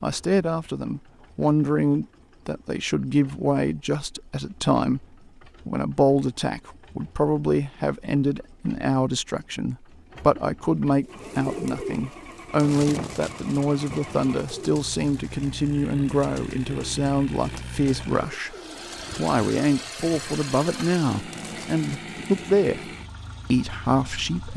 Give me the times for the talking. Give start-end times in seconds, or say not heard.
0.0-5.0, 5.7-18.6, 19.1-22.9, 23.5-24.5.